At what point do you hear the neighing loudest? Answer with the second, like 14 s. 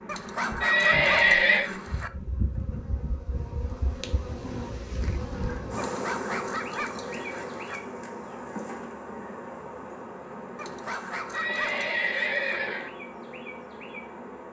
1 s.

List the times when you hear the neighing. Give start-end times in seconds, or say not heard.
0.6-1.6, 11.3-12.9.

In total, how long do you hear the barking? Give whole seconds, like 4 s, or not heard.
6 s.